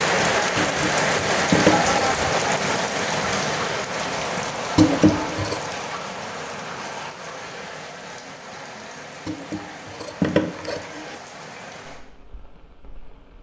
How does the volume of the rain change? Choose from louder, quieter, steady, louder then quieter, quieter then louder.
quieter.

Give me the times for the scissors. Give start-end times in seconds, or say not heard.
0.6-2.1, 4.8-5.6, 9.2-11.2.